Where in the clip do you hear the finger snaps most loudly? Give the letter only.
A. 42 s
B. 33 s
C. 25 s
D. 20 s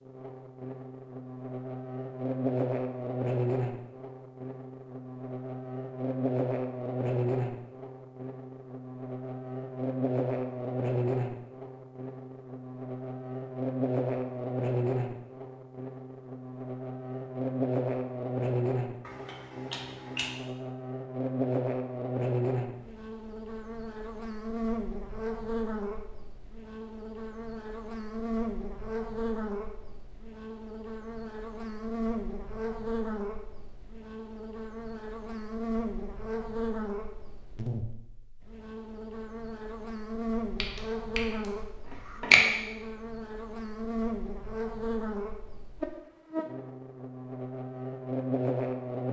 A.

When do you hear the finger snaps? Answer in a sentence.
You can hear the finger snaps from 19.1 to 20.4 s and from 40.5 to 42.4 s.